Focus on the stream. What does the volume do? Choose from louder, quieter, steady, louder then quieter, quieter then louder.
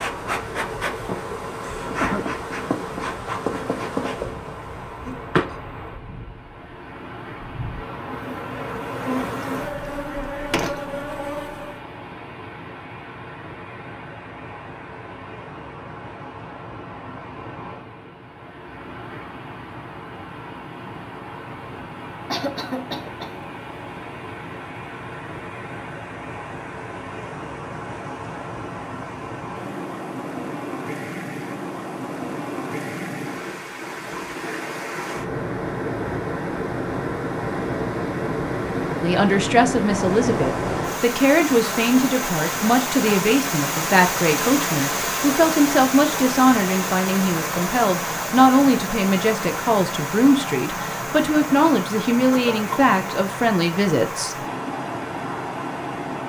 louder.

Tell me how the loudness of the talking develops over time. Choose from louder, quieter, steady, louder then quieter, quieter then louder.
steady.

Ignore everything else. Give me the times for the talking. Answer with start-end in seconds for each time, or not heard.
39.0-54.4.